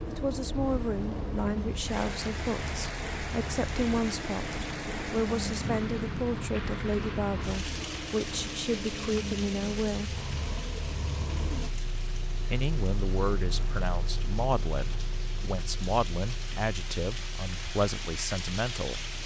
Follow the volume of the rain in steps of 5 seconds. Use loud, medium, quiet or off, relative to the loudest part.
loud, loud, medium, loud.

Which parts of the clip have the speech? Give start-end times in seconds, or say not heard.
0.1-10.2, 12.5-19.0.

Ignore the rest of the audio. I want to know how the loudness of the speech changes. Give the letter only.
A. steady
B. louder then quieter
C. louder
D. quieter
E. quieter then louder
A.